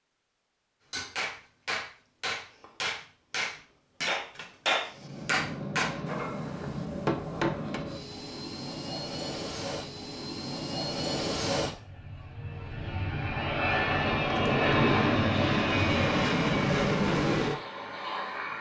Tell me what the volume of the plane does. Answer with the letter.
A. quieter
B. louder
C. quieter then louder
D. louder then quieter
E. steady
B.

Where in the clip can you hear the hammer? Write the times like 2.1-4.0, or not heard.
0.9-7.8.